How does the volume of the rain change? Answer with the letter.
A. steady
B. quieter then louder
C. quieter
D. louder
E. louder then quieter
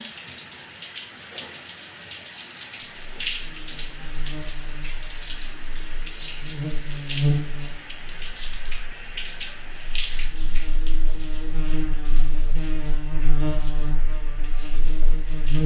C.